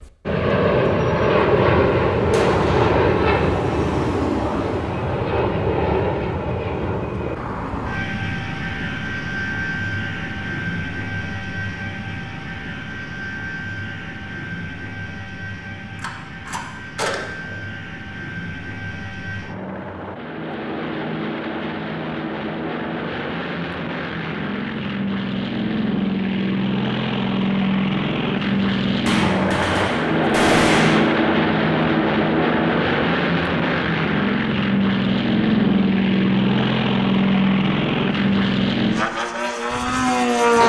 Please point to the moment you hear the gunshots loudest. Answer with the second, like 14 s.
31 s.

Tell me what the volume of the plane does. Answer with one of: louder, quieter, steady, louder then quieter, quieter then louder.
quieter then louder.